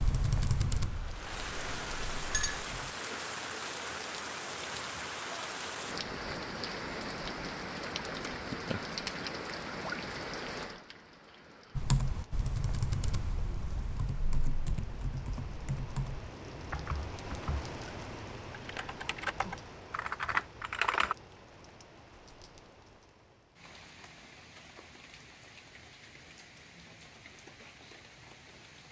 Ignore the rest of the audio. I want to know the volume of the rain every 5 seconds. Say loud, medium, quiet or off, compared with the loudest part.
loud, loud, medium, medium, quiet, quiet.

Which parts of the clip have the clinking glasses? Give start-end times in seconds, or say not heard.
1.3-2.6.